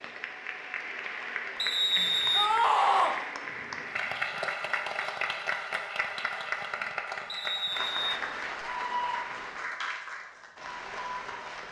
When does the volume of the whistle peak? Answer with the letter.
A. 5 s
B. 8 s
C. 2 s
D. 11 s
C.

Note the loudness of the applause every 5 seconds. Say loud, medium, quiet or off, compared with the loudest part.
loud, loud, medium.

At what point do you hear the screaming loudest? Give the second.
3 s.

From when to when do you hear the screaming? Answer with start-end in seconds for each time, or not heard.
2.4-3.1, 8.6-9.3.